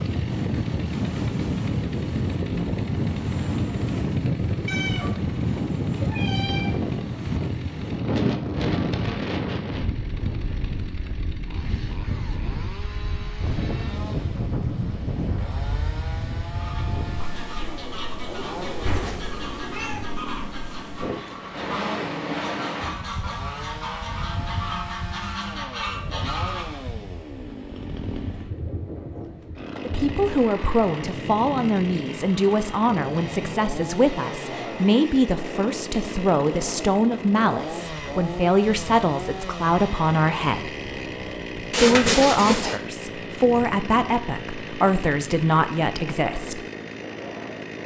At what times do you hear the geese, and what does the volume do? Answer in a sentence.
The geese can be heard from 16.6 to 26.8 s, getting louder.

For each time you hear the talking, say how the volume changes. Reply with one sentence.
The talking can be heard from 29.8 to 40.7 s, at a steady volume; and from 41.7 to 46.6 s, at a steady volume.